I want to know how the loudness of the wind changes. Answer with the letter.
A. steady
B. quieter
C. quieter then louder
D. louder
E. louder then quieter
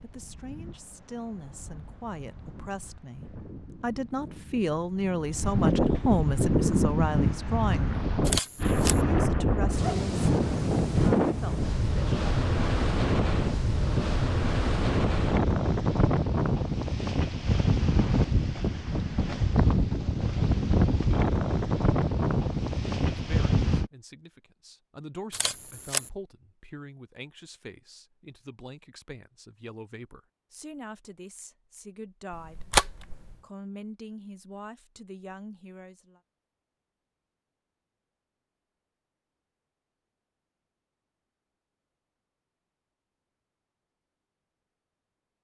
D.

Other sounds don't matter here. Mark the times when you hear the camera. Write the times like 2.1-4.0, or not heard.
8.2-9.1, 25.3-26.1, 32.3-33.4.